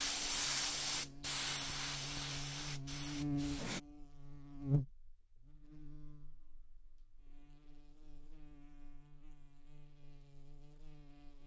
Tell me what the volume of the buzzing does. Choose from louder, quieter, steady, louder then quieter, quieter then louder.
louder then quieter.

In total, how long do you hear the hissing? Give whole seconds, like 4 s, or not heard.
4 s.